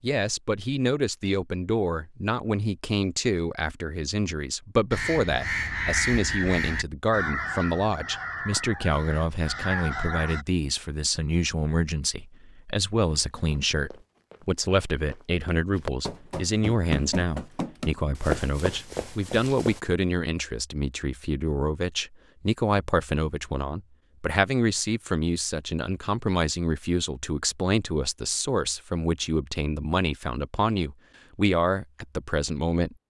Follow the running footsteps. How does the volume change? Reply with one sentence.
The volume of the running footsteps goes up.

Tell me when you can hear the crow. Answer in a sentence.
The crow can be heard from 4.9 to 10.4 s.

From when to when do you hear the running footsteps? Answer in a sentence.
The running footsteps can be heard from 13.1 to 19.8 s.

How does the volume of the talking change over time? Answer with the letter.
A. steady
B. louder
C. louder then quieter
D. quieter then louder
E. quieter
A.